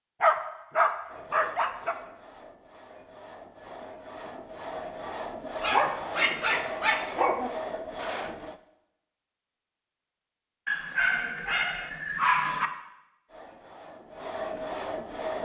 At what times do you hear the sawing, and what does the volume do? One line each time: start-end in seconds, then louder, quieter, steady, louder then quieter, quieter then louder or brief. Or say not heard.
1.1-8.6 louder
13.2-15.3 brief.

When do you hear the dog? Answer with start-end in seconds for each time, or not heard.
0.2-1.9, 5.6-7.5, 10.7-12.7.